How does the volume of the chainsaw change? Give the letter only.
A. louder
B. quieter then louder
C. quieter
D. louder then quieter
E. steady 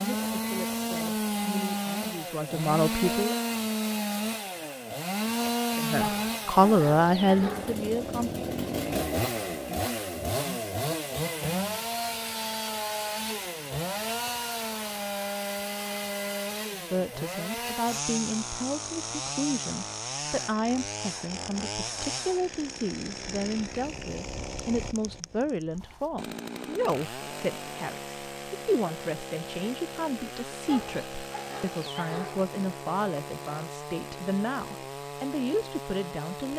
C.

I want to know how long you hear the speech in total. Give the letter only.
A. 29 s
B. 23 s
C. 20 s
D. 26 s
D.